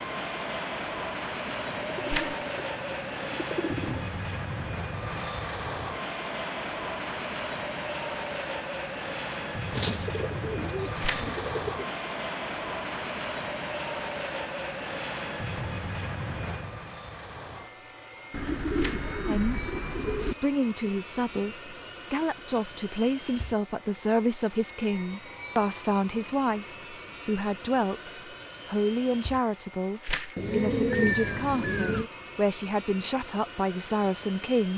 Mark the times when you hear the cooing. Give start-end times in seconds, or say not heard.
1.5-4.1, 9.7-11.9, 18.3-20.4, 30.4-32.1.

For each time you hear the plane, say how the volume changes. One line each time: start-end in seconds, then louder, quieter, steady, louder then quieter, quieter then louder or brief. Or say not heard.
0.0-34.7 quieter.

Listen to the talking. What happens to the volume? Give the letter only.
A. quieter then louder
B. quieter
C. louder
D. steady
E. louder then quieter
D.